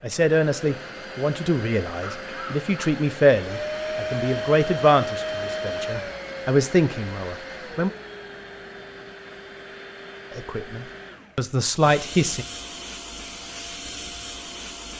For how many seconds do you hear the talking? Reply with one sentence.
You can hear the talking for 10 seconds altogether.